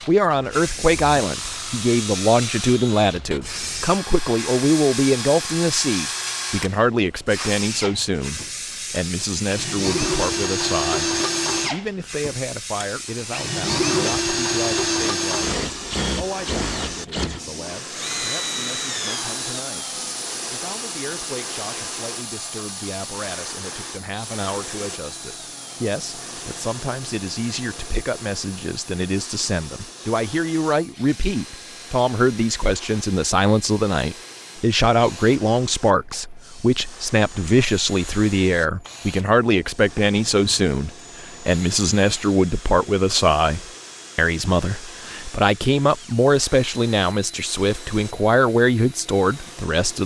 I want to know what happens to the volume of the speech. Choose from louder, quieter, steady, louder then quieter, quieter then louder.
quieter then louder.